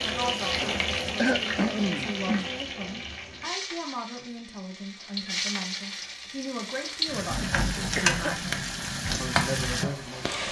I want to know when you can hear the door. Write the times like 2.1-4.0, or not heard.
not heard.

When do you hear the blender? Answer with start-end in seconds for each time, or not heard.
not heard.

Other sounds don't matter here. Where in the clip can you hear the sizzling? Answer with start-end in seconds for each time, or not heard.
0.0-10.4.